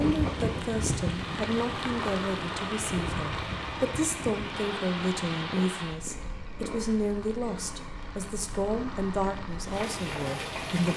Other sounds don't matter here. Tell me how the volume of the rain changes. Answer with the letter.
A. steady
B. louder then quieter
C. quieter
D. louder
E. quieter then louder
E.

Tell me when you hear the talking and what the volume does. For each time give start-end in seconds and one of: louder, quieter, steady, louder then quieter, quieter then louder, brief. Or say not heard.
0.0-10.9 steady.